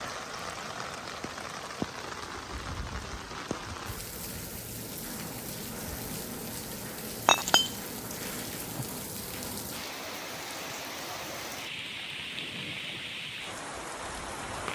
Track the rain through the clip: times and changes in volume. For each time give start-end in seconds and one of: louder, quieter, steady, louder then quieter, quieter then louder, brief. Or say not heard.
0.0-14.7 steady.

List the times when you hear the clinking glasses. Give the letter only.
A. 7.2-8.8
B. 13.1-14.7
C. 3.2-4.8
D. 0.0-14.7
A.